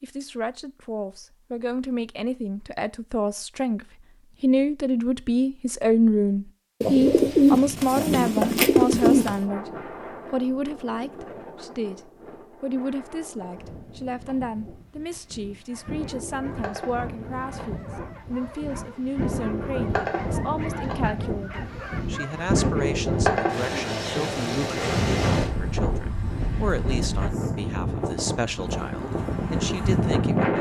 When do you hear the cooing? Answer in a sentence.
You can hear the cooing from 6.8 to 9.3 s.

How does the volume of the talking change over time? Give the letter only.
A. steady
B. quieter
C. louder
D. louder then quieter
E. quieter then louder
B.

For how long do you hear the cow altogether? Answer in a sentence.
You can't hear the cow here.